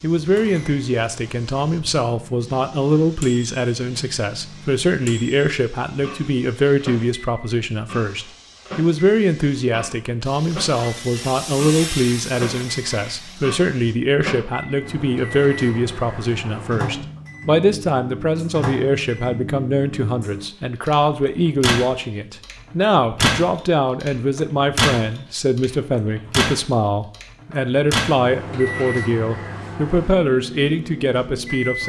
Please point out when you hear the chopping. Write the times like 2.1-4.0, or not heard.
not heard.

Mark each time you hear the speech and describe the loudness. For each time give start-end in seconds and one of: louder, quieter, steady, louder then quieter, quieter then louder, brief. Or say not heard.
0.0-31.8 steady.